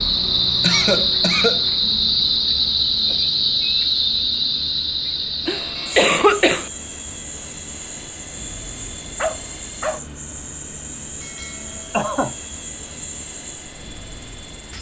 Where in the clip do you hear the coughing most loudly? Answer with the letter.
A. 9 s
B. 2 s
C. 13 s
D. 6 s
D.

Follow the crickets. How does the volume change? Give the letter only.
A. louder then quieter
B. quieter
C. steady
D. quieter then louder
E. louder
B.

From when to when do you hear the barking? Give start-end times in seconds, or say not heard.
9.2-10.4.